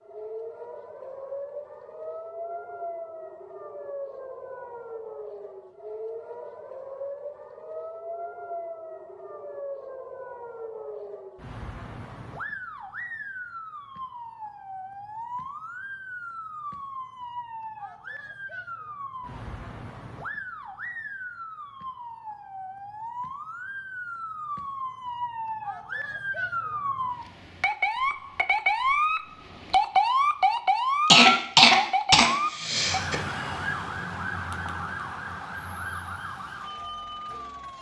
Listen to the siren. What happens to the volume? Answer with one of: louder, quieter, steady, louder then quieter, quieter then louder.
louder.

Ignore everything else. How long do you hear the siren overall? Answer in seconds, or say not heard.
38 s.